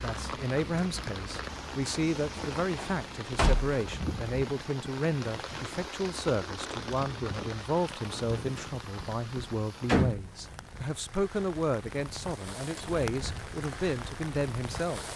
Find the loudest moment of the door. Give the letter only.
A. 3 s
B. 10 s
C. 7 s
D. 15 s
B.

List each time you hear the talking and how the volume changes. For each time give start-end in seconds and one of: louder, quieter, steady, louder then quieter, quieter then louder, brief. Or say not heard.
0.0-15.1 steady.